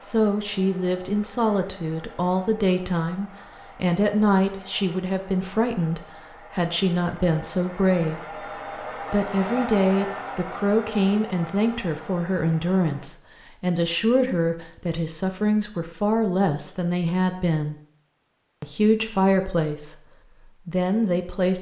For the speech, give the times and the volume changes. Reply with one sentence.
The speech can be heard from 0.0 to 17.8 s, at a steady volume; and briefly from 18.6 to 21.5 s.